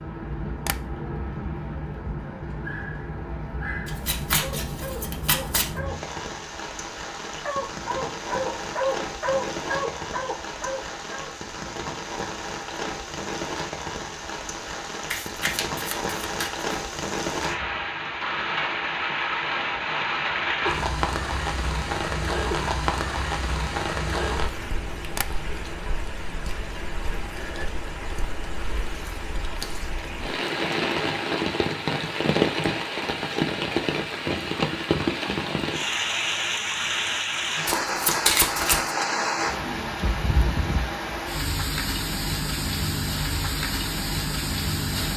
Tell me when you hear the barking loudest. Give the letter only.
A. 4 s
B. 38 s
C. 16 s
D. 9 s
D.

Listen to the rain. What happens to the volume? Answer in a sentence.
The loudness of the rain goes up.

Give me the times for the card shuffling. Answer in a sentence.
You can hear the card shuffling from 3.9 to 5.7 s, from 15.1 to 16.5 s and from 37.6 to 39.0 s.